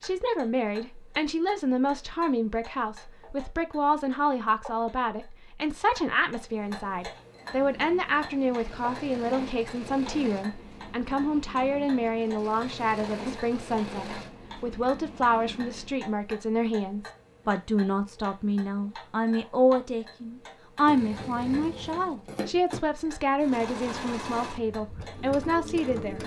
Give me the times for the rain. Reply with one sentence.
The rain can't be heard in this clip.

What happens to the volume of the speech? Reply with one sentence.
The loudness of the speech stays about the same.